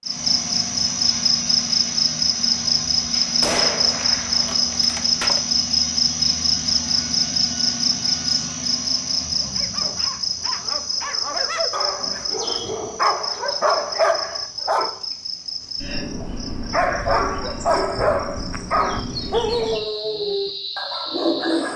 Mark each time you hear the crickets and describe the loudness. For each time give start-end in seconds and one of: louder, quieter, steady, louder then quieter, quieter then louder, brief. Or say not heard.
0.0-21.7 quieter.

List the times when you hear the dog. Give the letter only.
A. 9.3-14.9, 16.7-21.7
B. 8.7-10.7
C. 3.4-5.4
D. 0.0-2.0
A.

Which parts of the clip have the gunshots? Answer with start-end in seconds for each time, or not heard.
3.4-5.4.